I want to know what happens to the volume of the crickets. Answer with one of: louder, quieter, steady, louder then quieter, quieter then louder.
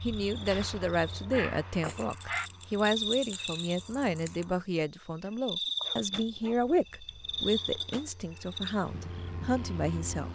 louder then quieter.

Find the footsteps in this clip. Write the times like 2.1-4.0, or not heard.
not heard.